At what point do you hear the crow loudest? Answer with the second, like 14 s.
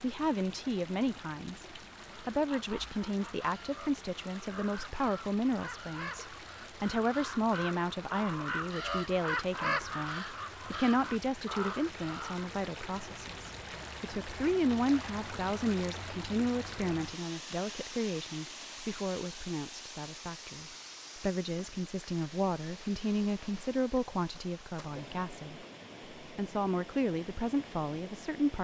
10 s.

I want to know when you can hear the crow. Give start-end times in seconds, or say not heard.
2.0-12.5.